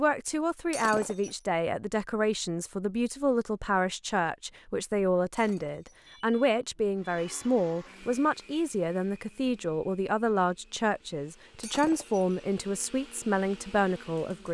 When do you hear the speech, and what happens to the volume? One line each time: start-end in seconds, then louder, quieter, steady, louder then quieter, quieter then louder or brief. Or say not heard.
0.0-14.4 steady.